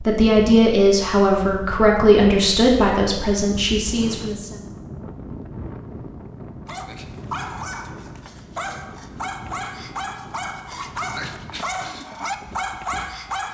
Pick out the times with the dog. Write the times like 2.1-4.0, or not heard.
6.7-13.4.